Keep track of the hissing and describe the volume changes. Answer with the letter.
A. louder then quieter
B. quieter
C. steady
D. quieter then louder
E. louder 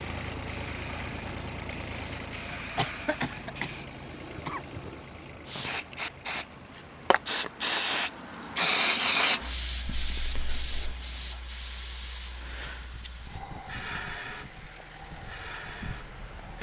A.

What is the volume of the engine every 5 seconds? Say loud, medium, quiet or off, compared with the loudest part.
loud, medium, medium, loud.